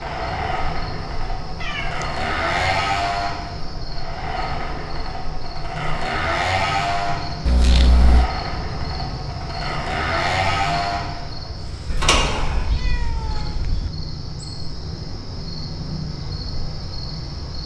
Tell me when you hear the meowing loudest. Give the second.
8 s.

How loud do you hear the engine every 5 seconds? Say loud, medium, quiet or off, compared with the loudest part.
loud, loud, loud, off.